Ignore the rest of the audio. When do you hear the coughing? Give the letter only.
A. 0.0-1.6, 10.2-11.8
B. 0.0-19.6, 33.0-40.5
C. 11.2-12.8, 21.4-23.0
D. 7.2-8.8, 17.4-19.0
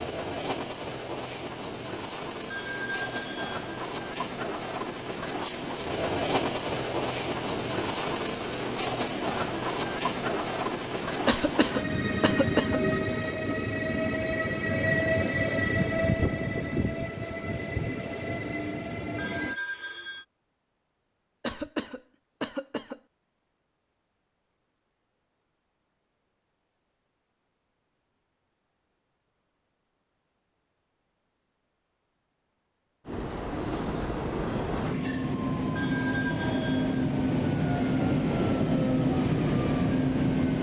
C.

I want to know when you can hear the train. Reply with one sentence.
You can hear the train from 0.0 to 19.6 s and from 33.0 to 40.5 s.